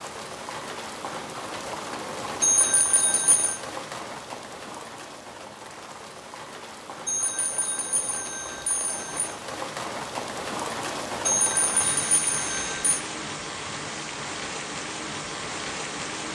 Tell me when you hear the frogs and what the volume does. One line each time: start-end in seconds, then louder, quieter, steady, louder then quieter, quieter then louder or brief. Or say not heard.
not heard.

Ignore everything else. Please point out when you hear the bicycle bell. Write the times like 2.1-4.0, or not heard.
2.4-3.6, 7.0-9.3, 11.2-13.0.